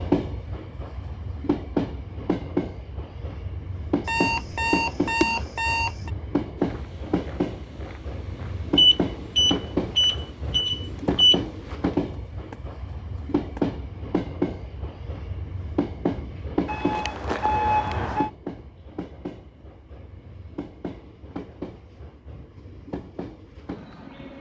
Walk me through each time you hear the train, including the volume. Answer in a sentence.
You can hear the train from 0.0 to 24.3 s, getting quieter.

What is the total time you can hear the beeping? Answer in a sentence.
You can hear the beeping for 6 seconds altogether.